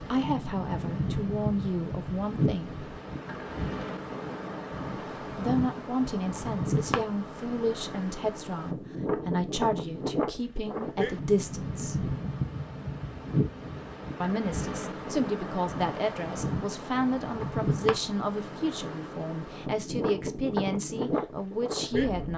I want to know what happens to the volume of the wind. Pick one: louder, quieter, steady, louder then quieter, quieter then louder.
steady.